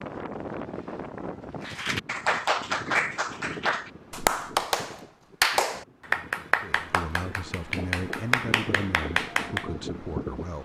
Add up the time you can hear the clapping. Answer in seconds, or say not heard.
8 s.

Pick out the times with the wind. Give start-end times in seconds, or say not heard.
0.0-10.6.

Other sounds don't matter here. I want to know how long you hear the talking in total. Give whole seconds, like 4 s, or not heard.
4 s.